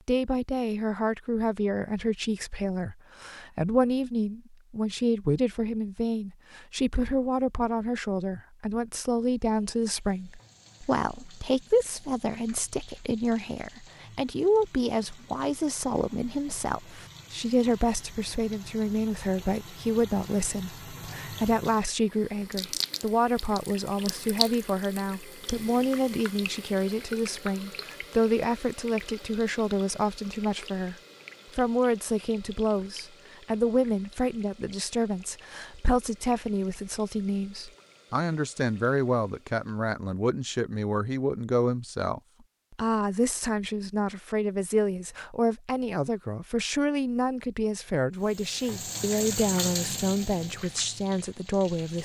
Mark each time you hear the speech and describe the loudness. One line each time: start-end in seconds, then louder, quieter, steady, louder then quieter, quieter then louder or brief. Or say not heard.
0.1-30.9 steady
31.6-51.9 steady.